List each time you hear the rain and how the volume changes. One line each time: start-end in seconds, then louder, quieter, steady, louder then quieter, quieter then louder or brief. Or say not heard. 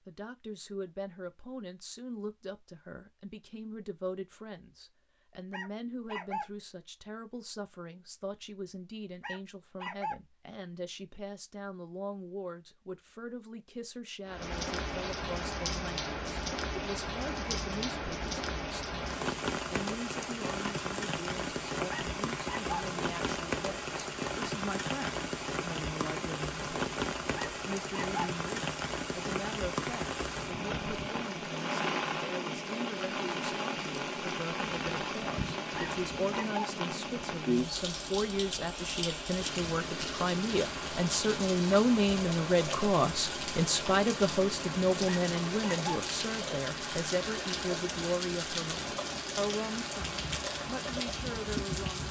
14.2-52.0 steady.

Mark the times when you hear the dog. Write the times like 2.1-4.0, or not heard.
5.5-6.5, 9.2-10.2, 21.9-22.9, 27.4-28.2, 35.8-36.6, 45.0-45.9.